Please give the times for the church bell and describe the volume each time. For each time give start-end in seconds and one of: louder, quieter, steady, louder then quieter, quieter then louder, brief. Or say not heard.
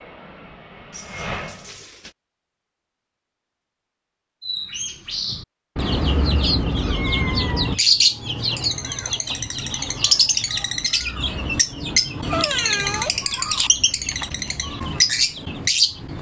not heard.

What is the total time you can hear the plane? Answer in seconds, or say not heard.
2 s.